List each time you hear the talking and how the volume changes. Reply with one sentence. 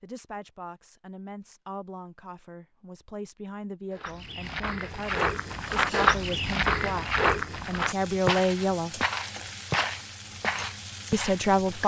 You can hear the talking from 0.0 to 9.0 s, getting louder; and briefly from 11.1 to 11.8 s.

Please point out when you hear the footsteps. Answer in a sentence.
You can hear the footsteps from 3.9 to 11.4 s.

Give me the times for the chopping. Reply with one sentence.
The chopping can't be heard in this clip.